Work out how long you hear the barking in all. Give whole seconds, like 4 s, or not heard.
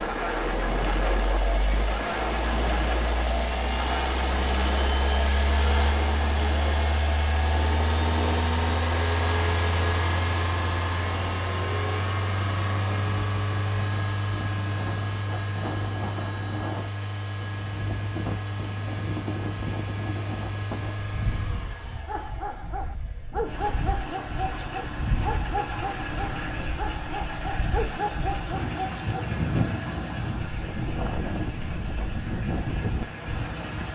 7 s.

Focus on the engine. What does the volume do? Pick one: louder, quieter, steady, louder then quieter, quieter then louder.
quieter.